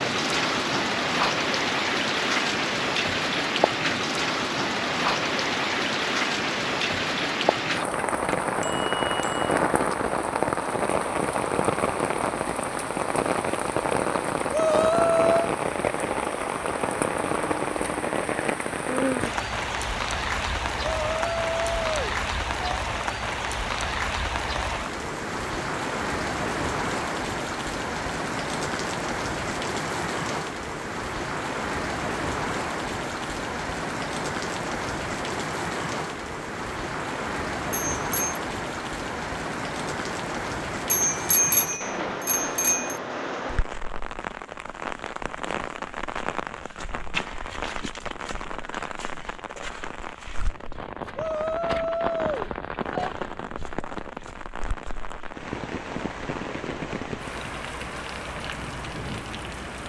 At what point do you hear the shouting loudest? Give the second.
15 s.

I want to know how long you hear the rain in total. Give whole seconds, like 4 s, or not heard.
60 s.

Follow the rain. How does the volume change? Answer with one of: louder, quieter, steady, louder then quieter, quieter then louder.
quieter.